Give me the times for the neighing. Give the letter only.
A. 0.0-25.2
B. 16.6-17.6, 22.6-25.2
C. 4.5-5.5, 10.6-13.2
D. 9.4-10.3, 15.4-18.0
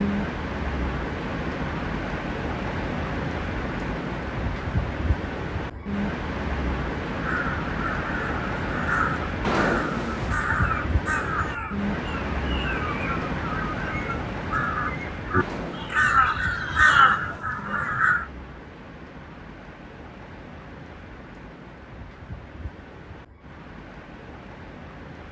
D.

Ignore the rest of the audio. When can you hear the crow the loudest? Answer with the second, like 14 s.
17 s.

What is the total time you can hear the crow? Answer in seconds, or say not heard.
11 s.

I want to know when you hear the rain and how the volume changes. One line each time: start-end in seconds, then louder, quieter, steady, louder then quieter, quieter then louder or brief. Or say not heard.
0.0-25.2 quieter.